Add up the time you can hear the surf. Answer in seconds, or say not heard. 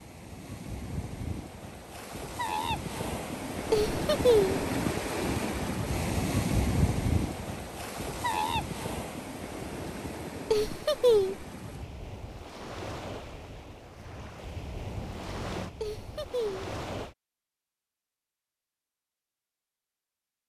17 s.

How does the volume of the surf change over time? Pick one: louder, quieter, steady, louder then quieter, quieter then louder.
louder then quieter.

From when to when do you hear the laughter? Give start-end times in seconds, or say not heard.
3.7-4.5, 10.5-11.4, 15.8-16.6.